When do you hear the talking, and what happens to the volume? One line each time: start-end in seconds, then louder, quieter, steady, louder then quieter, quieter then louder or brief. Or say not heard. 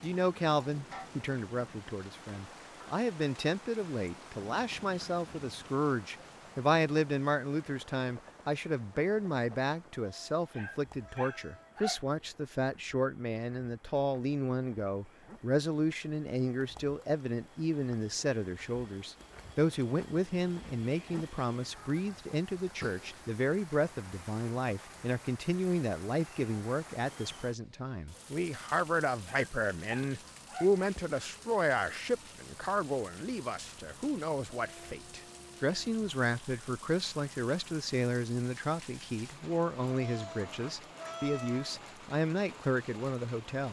0.0-43.6 steady.